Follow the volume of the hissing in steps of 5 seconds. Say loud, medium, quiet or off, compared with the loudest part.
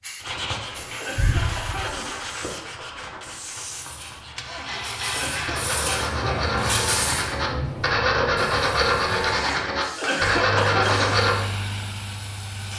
medium, loud, medium.